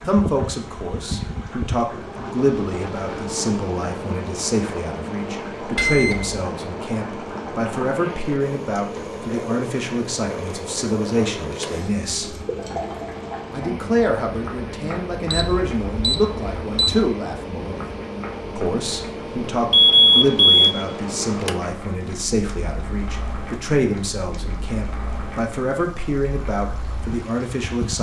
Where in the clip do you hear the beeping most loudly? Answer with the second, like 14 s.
20 s.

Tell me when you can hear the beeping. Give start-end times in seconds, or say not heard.
5.8-6.4, 15.2-17.1, 19.7-20.6.